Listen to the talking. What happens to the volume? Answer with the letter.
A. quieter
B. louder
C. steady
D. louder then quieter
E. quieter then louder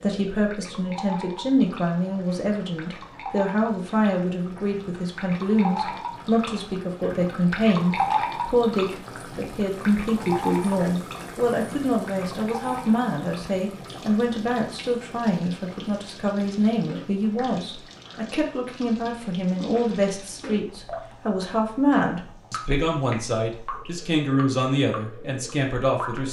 C.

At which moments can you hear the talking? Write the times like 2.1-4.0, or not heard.
0.0-26.2.